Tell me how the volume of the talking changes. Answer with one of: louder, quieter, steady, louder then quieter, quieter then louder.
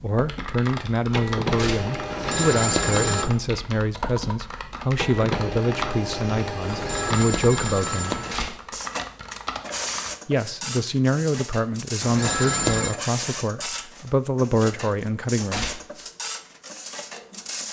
steady.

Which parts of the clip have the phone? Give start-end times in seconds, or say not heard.
2.1-3.3, 6.7-8.3, 12.0-12.9.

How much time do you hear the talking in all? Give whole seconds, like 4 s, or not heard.
14 s.